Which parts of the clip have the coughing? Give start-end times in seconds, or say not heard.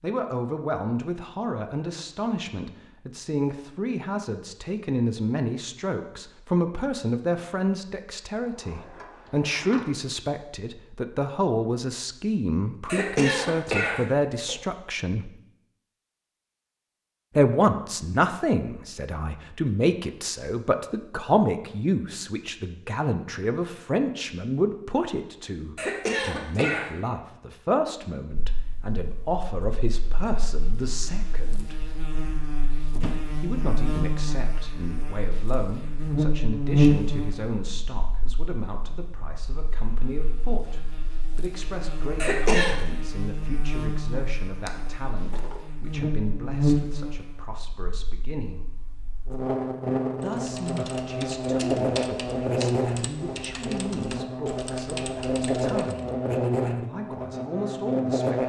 12.8-14.6, 25.8-26.9, 42.1-42.8.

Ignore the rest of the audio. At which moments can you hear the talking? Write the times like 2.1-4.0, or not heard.
0.0-15.3, 17.4-31.8, 33.4-48.6, 50.2-58.4.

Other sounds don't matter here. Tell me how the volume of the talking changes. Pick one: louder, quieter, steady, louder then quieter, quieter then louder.
quieter.